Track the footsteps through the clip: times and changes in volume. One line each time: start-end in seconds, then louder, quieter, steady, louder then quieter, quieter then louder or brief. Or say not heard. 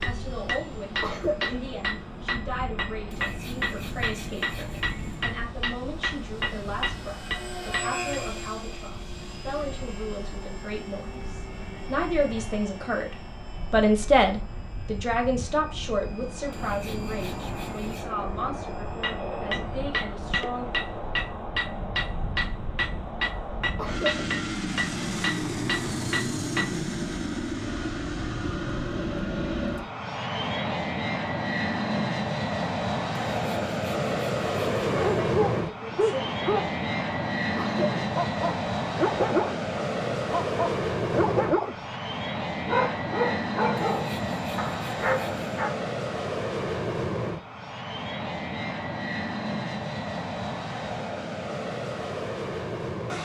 not heard.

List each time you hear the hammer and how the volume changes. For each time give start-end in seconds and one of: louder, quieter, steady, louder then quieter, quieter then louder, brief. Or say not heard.
0.0-8.0 steady
19.0-26.9 steady.